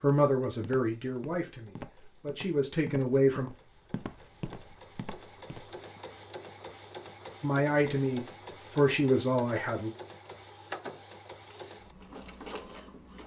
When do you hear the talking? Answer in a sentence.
The talking can be heard from 0.0 to 3.5 s and from 7.4 to 9.9 s.